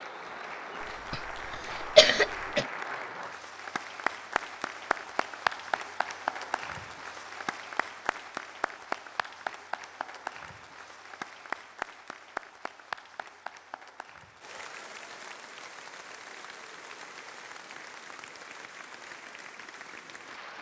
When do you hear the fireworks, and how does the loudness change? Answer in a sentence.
The fireworks can't be heard in this clip.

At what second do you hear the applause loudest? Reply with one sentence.
The loudest moment of the applause is at 6 seconds.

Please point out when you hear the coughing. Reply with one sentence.
The coughing can be heard from 0.8 to 2.6 s.